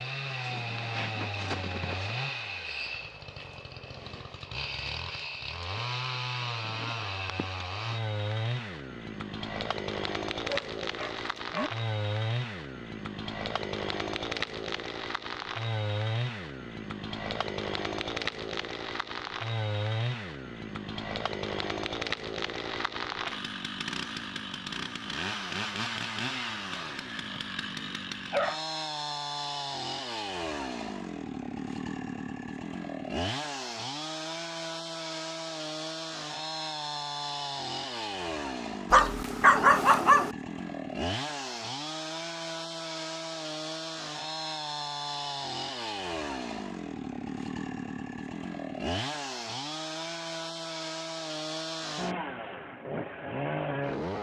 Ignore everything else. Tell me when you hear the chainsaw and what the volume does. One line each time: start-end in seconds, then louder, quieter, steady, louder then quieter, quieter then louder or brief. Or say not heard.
0.0-54.1 steady.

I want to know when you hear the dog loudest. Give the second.
40 s.